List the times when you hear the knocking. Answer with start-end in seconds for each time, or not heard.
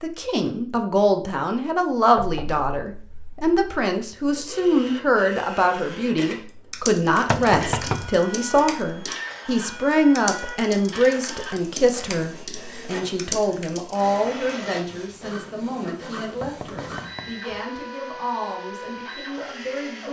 2.1-3.6, 7.3-8.1, 16.4-17.6.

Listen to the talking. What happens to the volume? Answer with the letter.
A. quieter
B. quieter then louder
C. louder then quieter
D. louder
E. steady
A.